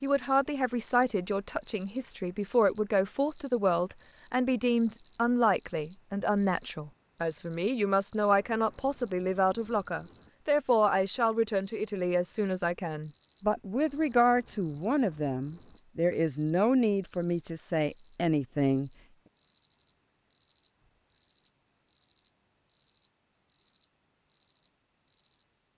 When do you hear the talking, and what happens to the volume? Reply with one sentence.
The talking can be heard from 0.0 to 18.9 s, at a steady volume.